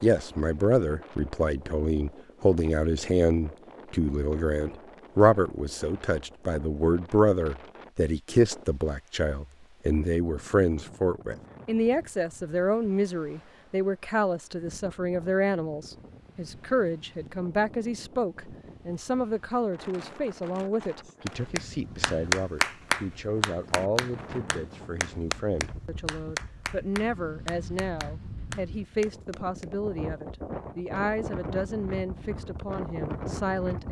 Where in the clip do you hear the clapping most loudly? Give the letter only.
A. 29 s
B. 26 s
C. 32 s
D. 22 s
D.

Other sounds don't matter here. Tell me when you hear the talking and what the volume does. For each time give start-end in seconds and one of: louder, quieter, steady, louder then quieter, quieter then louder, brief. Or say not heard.
0.0-33.8 quieter.